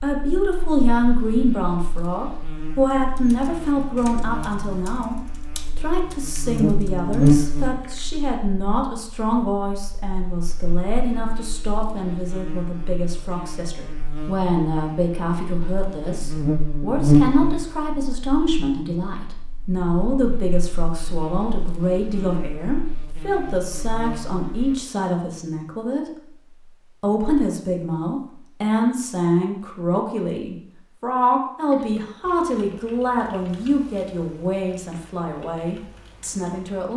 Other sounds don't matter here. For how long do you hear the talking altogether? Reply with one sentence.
You can hear the talking for 36 seconds altogether.